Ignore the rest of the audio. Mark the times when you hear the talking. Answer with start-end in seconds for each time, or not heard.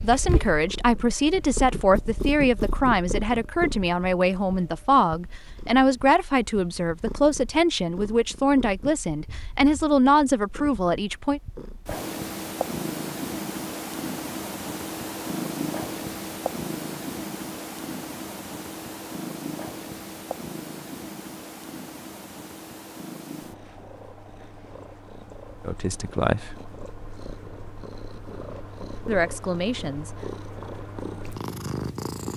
0.0-11.4, 25.6-26.6, 29.1-30.1.